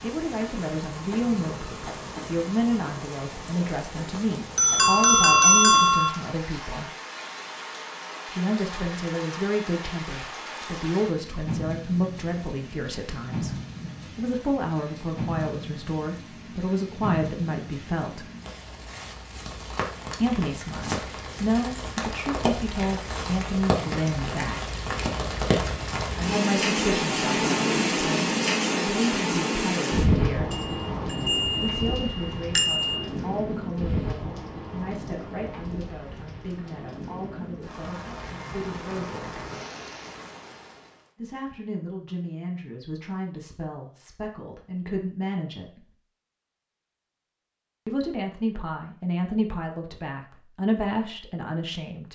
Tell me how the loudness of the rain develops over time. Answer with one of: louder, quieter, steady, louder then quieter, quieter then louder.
louder then quieter.